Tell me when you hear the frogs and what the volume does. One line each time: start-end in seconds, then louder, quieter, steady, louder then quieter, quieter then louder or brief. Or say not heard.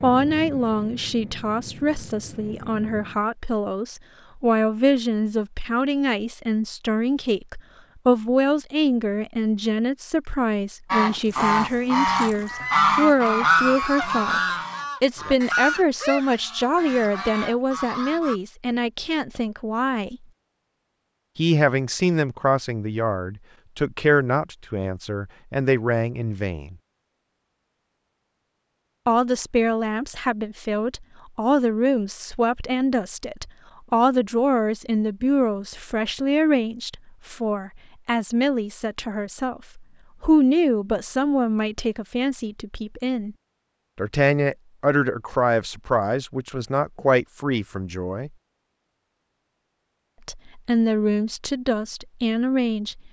not heard.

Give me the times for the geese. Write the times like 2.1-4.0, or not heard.
10.9-18.4.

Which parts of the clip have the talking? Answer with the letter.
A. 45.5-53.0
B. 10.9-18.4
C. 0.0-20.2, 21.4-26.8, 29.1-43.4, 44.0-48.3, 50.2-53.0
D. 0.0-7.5
C.